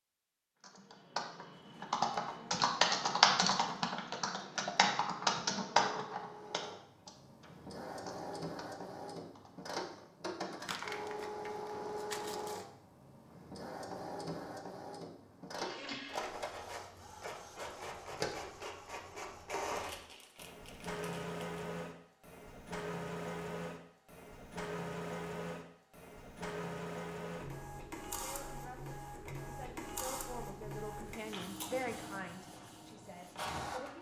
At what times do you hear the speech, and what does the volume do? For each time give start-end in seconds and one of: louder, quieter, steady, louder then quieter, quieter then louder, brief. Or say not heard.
28.1-33.9 louder then quieter.